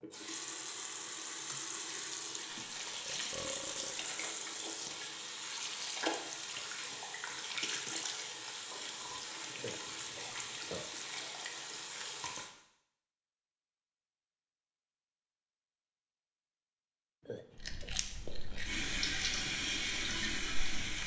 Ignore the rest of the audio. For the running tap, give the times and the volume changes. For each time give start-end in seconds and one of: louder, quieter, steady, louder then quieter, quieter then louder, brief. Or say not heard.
0.0-12.5 steady
18.6-21.0 brief.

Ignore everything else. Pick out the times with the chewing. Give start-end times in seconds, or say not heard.
17.6-21.0.